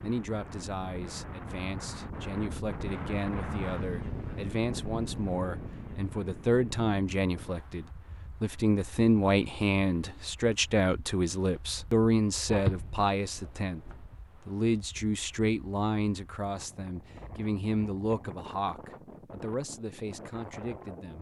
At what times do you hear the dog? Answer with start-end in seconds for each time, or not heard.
12.4-14.0.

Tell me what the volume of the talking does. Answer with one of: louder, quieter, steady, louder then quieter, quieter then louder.
louder then quieter.